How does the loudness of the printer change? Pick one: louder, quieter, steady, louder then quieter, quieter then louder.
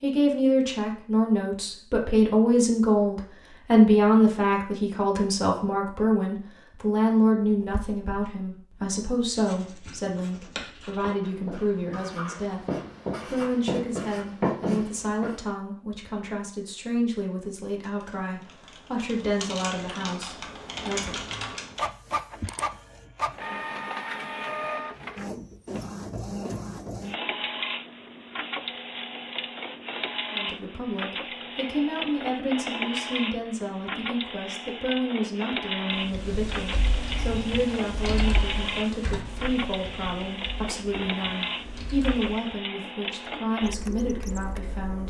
steady.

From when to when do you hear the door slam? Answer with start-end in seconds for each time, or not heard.
not heard.